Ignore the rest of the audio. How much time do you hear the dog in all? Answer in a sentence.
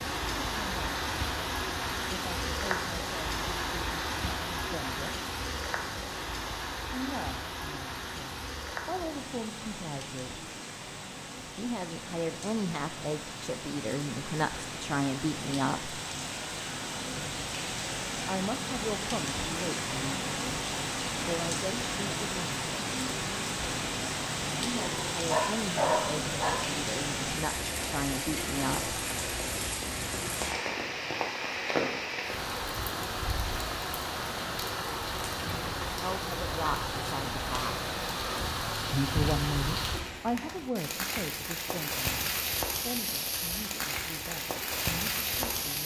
You can hear the dog for 2 seconds altogether.